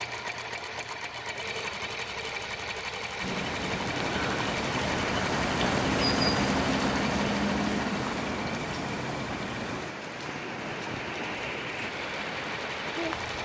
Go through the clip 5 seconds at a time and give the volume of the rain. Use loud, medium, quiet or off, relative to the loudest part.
loud, loud, medium.